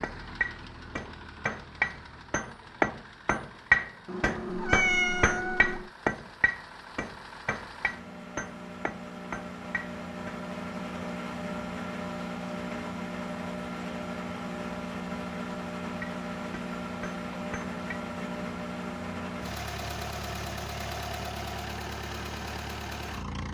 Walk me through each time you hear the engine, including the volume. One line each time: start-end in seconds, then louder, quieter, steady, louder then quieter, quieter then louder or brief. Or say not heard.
0.0-23.4 louder.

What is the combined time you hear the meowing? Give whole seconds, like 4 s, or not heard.
2 s.